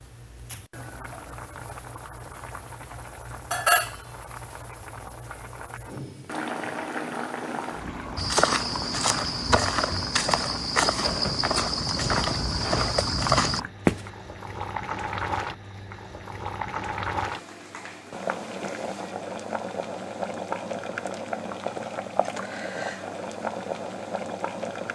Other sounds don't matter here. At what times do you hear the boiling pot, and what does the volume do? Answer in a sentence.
You can hear the boiling pot from 0.0 to 24.8 s, at a steady volume.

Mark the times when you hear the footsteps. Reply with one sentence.
The footsteps can be heard from 8.2 to 14.1 s.